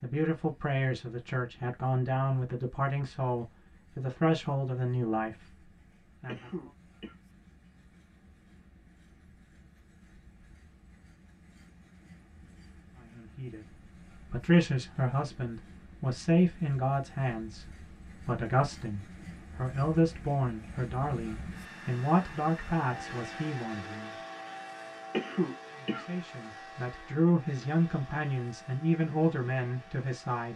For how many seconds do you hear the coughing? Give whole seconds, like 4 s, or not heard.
2 s.